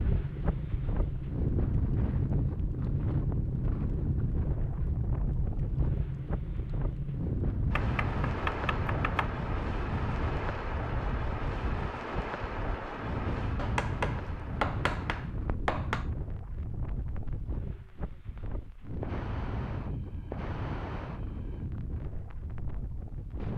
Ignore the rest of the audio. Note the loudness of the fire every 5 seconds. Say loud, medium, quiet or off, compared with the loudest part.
loud, loud, loud, medium, medium.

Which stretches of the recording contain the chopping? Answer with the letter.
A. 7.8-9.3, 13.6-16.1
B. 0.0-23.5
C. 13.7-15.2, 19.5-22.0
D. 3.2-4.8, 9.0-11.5
A.